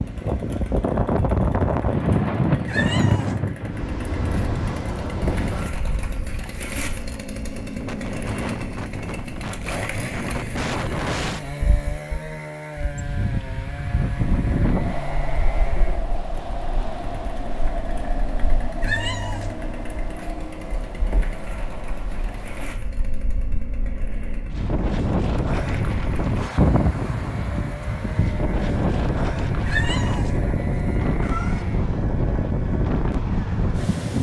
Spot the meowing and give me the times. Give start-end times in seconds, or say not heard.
2.6-3.4, 18.8-19.6, 29.6-31.6.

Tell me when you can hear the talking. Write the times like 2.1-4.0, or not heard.
not heard.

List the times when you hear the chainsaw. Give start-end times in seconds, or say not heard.
0.0-33.9.